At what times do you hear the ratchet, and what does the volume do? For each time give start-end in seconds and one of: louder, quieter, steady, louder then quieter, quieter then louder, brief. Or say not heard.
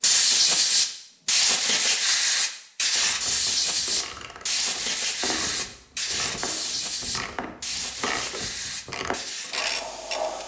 3.0-10.4 louder.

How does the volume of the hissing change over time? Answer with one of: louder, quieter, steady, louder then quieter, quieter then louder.
quieter.